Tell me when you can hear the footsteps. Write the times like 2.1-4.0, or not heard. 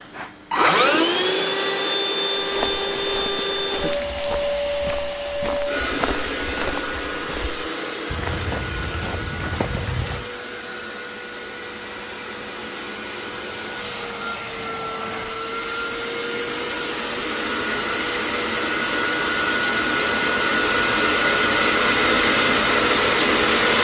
2.4-10.2.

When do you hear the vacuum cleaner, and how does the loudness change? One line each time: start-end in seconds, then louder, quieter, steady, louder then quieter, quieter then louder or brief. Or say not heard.
0.0-23.7 quieter then louder.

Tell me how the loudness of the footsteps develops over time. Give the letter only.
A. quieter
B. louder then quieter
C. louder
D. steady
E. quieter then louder
C.